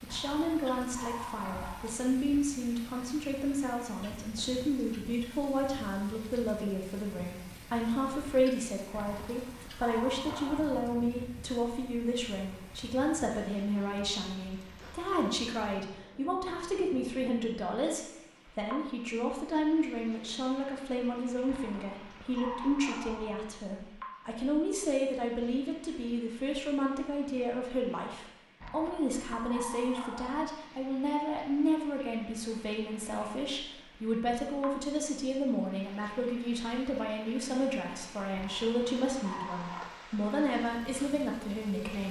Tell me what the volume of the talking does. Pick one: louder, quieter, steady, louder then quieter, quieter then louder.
steady.